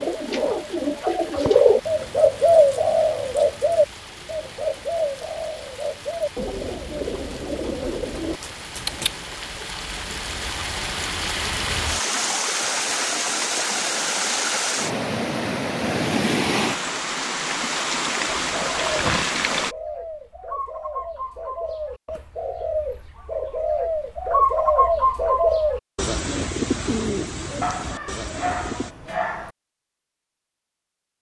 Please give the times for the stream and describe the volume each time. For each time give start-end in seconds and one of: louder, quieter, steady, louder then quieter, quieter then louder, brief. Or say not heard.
0.0-19.8 louder.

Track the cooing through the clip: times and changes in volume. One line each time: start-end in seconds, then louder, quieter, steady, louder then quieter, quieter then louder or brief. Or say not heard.
0.0-9.2 quieter
18.4-28.9 louder then quieter.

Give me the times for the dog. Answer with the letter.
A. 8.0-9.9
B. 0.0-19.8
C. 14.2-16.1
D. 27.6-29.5
D.